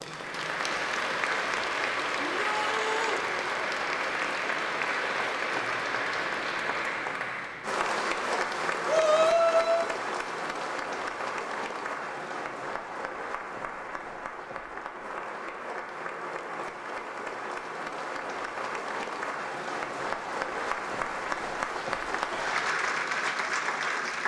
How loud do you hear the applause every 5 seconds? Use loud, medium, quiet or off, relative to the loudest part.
loud, loud, medium, medium, loud.